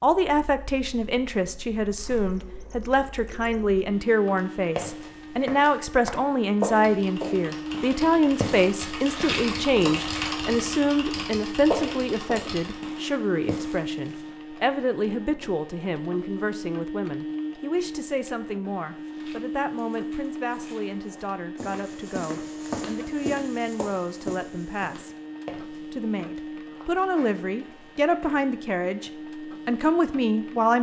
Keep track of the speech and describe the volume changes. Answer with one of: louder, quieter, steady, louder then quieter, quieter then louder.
quieter then louder.